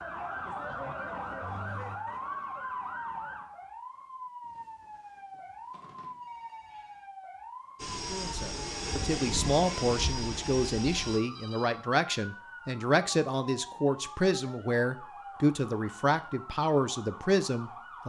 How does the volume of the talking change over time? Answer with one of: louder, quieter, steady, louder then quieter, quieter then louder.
steady.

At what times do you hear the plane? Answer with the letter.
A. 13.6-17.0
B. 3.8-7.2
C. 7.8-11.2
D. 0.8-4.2
C.